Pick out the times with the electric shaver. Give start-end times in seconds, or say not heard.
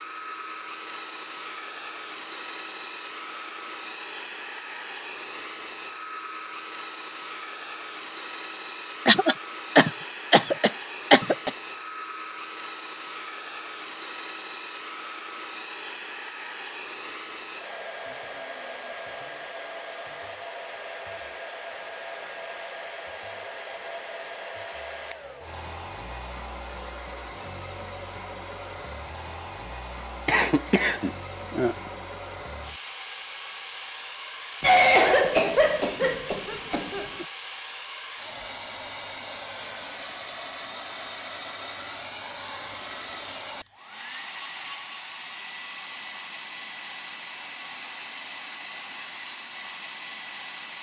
not heard.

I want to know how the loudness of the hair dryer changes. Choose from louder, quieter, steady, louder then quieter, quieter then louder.
steady.